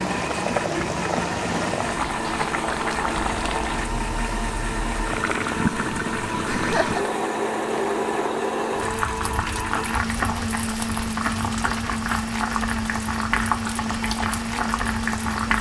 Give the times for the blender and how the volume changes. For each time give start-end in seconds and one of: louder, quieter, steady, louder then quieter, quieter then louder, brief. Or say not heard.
0.0-15.5 steady.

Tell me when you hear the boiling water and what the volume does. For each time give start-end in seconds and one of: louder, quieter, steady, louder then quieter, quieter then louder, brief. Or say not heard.
0.0-15.5 steady.